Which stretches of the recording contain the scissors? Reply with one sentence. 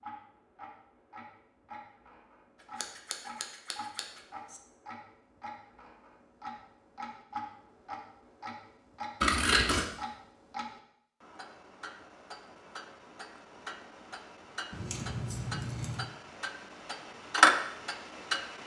The scissors can be heard from 2.8 to 4.6 s, from 9.2 to 9.8 s and from 14.7 to 16.1 s.